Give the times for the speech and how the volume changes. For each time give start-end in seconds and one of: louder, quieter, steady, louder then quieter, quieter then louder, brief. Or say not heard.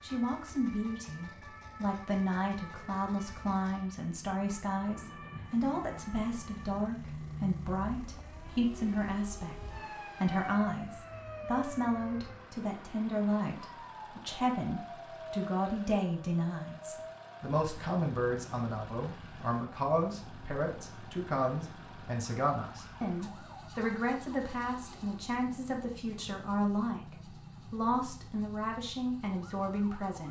0.0-9.6 steady
10.2-30.2 steady.